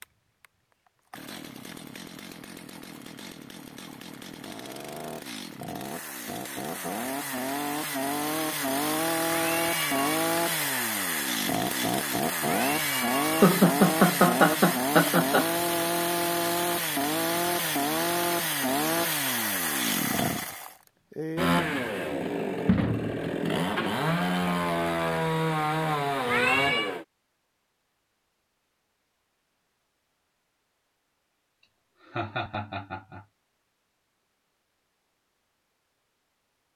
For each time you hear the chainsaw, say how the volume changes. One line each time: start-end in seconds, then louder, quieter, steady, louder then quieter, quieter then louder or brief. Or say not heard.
0.0-27.1 louder.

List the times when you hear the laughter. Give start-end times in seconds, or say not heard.
13.4-15.4, 32.0-33.2.